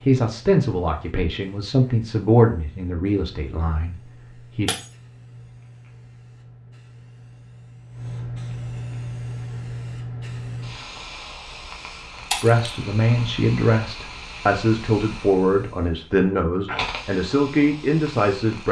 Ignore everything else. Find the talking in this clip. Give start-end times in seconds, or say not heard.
0.0-4.7, 12.4-18.6.